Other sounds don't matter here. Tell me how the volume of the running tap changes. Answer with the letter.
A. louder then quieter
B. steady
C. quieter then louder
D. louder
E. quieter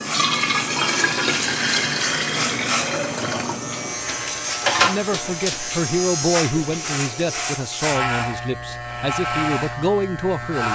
E.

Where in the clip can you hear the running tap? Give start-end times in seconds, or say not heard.
0.0-7.6.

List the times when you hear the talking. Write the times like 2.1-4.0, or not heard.
4.8-10.7.